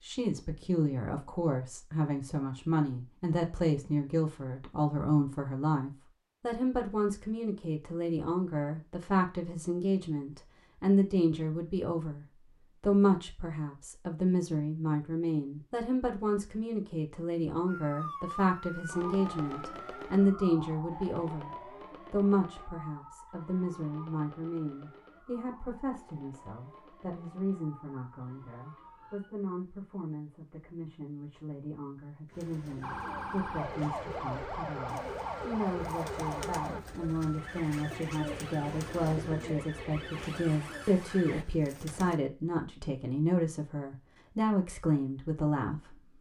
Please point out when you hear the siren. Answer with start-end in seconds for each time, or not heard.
17.6-29.3, 32.8-41.5.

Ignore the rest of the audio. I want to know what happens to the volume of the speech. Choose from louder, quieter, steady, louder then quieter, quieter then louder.
quieter then louder.